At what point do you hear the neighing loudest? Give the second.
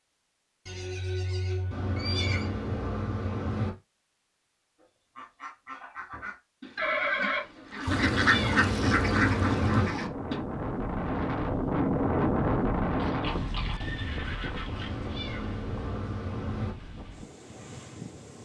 7 s.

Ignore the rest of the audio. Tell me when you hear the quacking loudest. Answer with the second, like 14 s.
8 s.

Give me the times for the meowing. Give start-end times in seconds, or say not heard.
1.7-3.7, 7.8-9.9, 14.7-16.8.